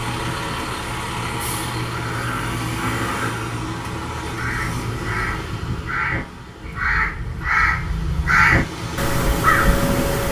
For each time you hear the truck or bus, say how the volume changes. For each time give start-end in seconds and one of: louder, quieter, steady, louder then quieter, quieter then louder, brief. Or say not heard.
0.0-10.2 quieter then louder.